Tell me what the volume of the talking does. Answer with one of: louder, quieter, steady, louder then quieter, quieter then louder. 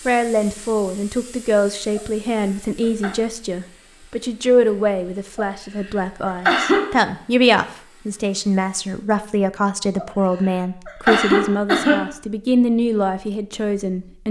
steady.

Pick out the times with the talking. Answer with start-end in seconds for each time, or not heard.
0.1-14.2.